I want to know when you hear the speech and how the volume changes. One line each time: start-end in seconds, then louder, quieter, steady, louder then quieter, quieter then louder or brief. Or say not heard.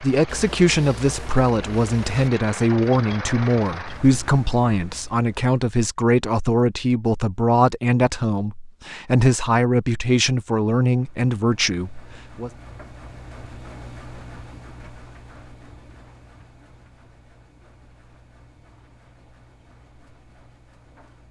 0.0-12.5 steady.